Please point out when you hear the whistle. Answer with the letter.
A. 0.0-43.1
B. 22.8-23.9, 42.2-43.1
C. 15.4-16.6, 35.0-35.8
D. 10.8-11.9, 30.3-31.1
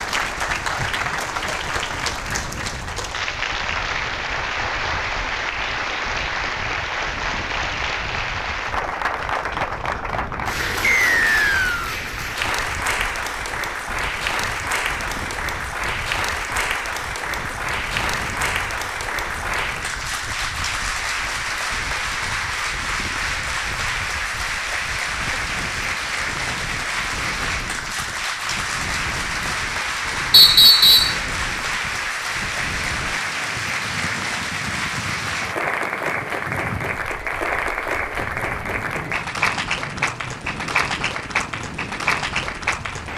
D.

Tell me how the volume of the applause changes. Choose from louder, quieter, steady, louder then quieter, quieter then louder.
steady.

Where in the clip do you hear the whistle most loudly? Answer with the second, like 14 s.
31 s.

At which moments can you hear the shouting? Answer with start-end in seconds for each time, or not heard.
not heard.